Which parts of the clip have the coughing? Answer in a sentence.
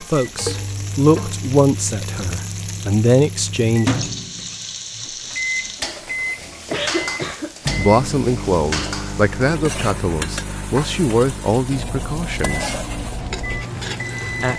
The coughing can be heard from 6.5 to 7.5 s.